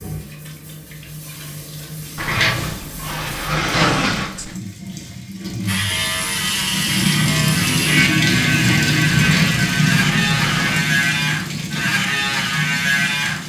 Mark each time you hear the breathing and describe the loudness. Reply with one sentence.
The breathing can't be heard in this clip.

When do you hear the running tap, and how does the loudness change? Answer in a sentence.
You can hear the running tap from 0.0 to 13.4 s, getting louder then quieter.